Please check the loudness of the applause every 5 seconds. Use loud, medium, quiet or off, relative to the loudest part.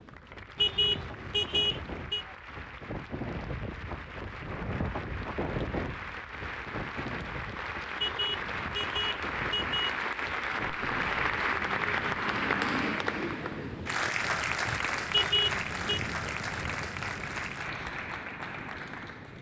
quiet, medium, loud, medium.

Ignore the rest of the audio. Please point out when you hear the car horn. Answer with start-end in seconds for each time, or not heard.
0.6-2.2, 8.0-10.1, 15.1-16.0.